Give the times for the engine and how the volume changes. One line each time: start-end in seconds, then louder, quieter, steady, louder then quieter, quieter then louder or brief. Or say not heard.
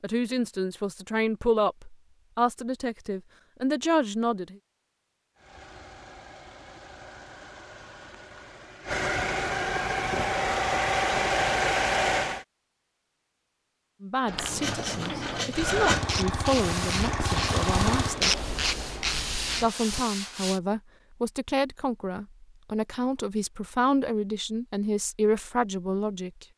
5.3-12.4 louder
15.5-18.2 brief.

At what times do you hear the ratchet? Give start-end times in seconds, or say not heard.
14.2-20.1.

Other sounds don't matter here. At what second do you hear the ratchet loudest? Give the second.
18 s.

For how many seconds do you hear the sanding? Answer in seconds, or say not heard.
6 s.